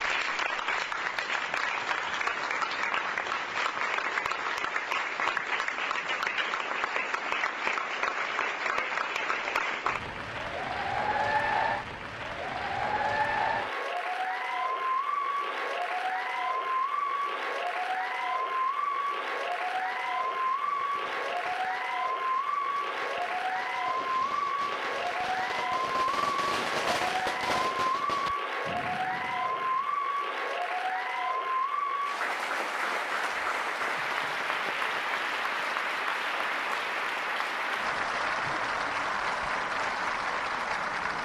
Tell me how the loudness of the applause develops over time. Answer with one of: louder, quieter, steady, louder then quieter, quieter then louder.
steady.